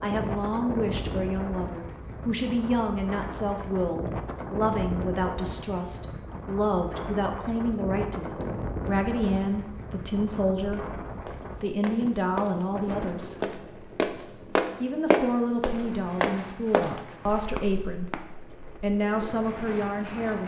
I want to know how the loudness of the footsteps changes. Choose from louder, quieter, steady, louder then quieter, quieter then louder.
louder then quieter.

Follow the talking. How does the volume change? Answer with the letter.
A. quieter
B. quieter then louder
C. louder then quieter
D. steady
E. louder
D.